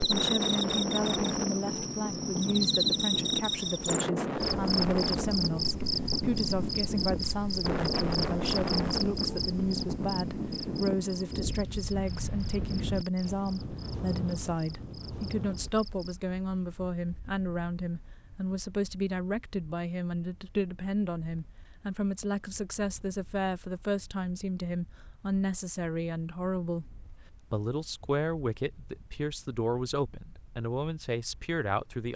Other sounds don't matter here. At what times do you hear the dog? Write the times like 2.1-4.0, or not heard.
not heard.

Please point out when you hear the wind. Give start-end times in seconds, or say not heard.
0.0-32.1.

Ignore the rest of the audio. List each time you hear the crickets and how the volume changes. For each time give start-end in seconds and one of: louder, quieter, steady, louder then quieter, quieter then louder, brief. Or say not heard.
0.0-16.1 quieter.